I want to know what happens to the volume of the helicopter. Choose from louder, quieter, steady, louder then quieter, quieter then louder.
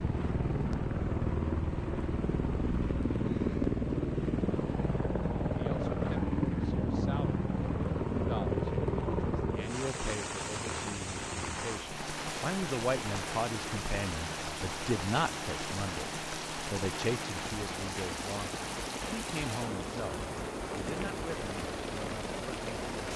quieter.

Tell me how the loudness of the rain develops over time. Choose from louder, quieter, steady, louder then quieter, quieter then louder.
louder.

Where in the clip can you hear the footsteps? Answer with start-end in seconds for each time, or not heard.
not heard.